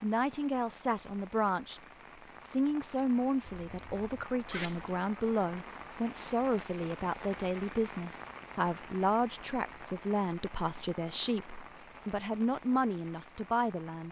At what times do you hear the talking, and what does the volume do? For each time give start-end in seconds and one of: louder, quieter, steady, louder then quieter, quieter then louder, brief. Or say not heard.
0.0-1.8 brief
2.4-14.0 steady.